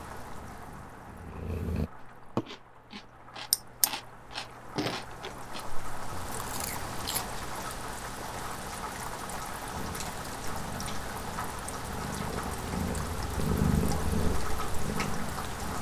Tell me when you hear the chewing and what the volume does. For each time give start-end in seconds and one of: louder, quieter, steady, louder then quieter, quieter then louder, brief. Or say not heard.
2.4-7.5 quieter.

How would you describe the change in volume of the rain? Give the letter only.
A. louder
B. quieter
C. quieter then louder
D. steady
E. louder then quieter
A.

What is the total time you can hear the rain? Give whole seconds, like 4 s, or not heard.
16 s.